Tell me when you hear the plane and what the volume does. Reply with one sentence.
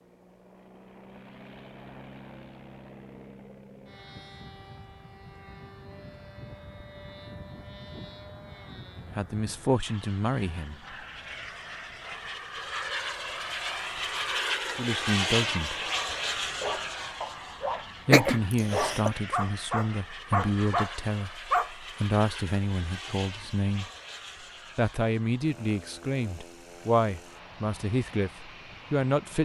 You can hear the plane from 0.0 to 29.3 s, getting louder then quieter.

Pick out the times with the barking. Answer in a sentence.
You can hear the barking from 16.4 to 21.7 s.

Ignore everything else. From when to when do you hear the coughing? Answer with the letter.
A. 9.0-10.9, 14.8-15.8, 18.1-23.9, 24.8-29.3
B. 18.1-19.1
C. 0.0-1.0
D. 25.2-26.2
B.